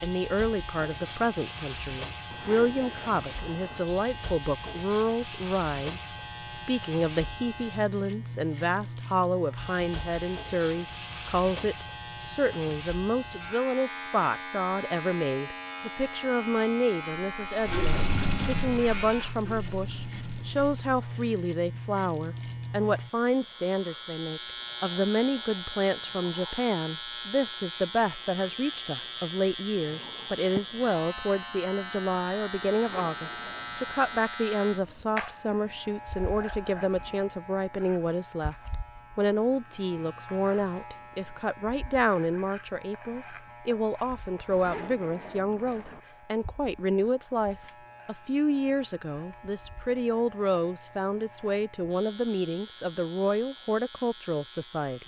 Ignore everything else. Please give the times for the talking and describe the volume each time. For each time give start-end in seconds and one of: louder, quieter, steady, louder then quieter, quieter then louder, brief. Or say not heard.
0.0-38.5 steady
39.1-55.0 steady.